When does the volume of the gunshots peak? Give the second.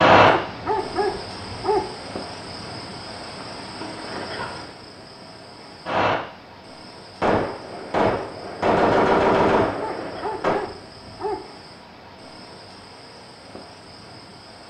9 s.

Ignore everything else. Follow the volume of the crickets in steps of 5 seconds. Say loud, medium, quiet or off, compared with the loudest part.
loud, medium, quiet.